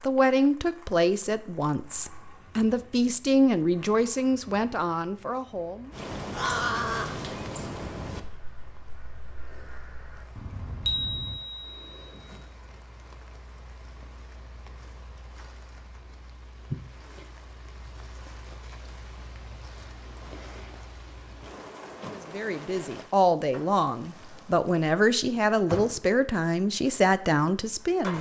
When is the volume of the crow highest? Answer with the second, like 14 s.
7 s.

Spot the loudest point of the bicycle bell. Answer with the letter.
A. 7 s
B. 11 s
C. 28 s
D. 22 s
B.